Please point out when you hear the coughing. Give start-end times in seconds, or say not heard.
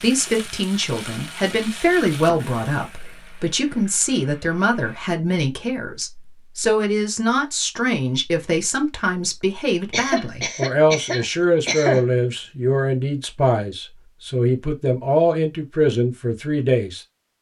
9.9-12.1.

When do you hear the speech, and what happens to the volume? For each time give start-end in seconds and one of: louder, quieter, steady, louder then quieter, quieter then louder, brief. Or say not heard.
0.0-17.0 steady.